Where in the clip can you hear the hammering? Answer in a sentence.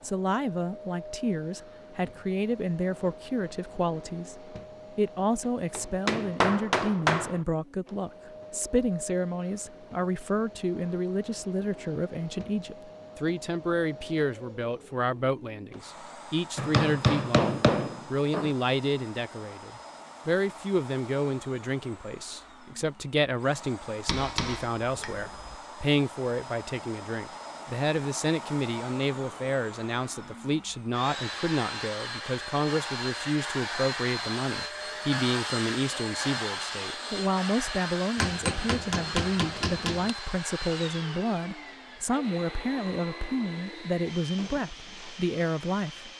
The hammering can be heard from 5.7 to 7.4 s, from 16.6 to 18.6 s, from 24.1 to 25.6 s and from 38.1 to 40.1 s.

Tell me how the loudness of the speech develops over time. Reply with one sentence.
The volume of the speech stays about the same.